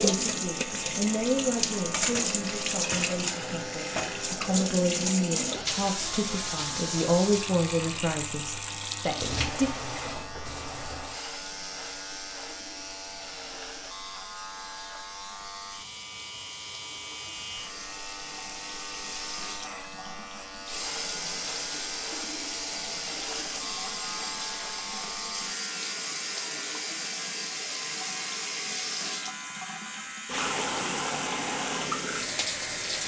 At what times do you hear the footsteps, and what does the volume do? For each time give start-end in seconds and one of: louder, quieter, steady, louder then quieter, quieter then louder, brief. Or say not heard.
not heard.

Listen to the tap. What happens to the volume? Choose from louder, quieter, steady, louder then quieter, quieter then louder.
quieter then louder.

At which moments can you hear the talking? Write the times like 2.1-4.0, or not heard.
0.0-9.7.